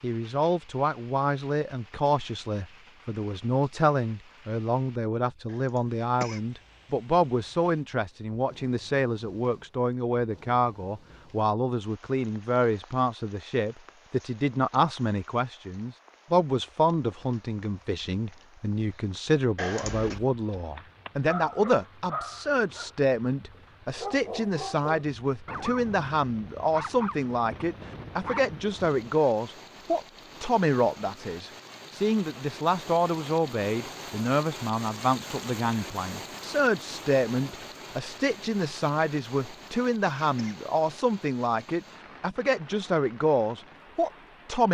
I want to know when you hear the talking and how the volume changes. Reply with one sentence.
The talking can be heard from 0.0 to 44.6 s, at a steady volume.